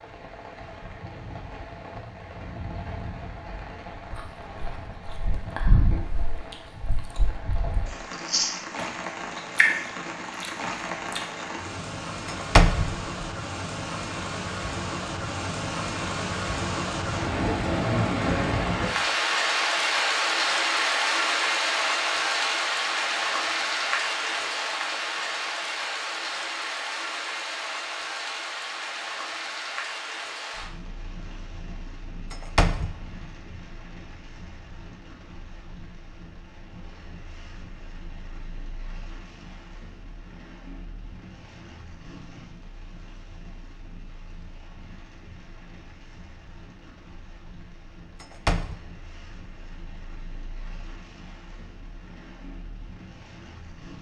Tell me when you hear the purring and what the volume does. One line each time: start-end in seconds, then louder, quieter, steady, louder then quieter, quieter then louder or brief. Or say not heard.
not heard.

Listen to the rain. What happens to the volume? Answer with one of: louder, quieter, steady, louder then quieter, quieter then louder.
louder then quieter.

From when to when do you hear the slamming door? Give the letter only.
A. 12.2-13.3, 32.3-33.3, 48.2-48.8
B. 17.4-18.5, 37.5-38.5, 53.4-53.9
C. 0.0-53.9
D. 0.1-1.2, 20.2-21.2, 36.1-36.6
A.